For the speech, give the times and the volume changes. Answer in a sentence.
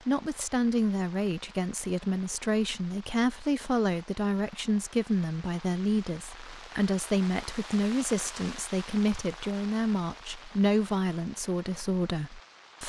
The speech can be heard from 0.1 to 12.8 s, at a steady volume.